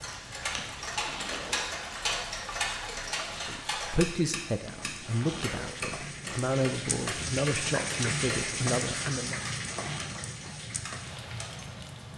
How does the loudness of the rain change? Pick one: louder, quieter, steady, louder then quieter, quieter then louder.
louder then quieter.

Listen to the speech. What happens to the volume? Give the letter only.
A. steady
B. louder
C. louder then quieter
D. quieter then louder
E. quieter
A.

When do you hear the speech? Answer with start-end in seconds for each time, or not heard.
3.5-9.4.